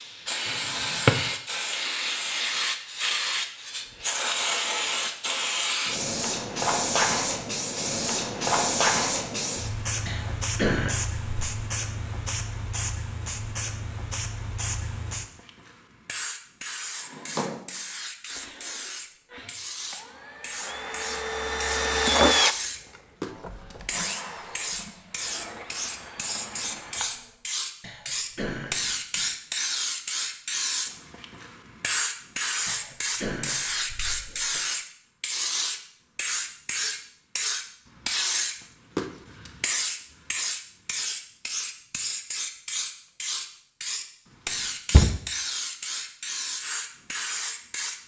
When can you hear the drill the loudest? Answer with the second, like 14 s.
22 s.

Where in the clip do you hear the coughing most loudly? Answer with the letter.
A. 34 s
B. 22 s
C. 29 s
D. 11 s
D.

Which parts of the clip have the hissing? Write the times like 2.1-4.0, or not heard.
0.0-48.0.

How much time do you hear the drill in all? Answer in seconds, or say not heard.
9 s.